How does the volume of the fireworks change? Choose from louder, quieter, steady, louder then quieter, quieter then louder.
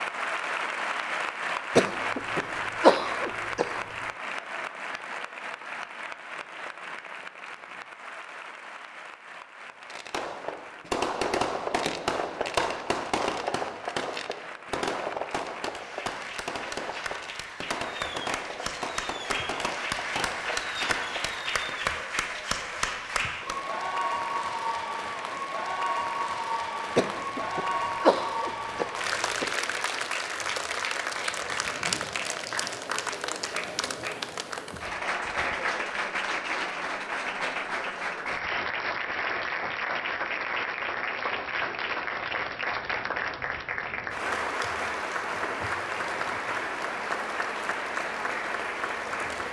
quieter.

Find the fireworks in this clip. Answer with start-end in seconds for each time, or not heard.
9.8-21.9.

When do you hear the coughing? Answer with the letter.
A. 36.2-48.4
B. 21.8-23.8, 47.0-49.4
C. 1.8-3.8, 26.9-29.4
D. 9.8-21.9
C.